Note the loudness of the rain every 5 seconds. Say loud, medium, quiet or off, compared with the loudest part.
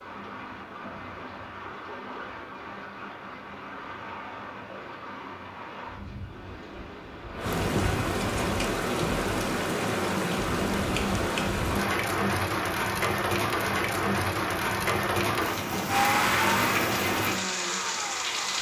quiet, loud, loud, loud.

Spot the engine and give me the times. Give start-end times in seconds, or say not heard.
15.8-18.5.